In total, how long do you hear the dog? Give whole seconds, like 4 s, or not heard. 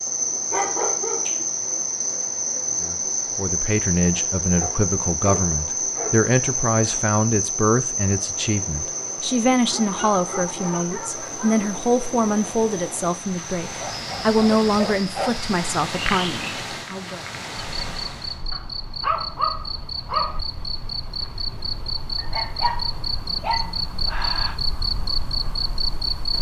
11 s.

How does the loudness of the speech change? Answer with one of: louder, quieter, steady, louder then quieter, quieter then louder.
steady.